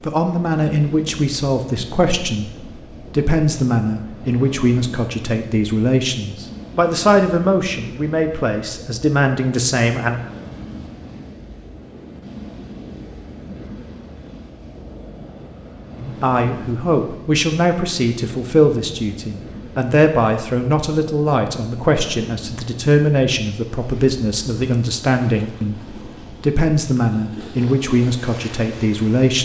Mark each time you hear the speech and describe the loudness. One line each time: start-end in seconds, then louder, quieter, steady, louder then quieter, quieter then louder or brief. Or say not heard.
0.0-10.2 steady
15.9-29.3 steady.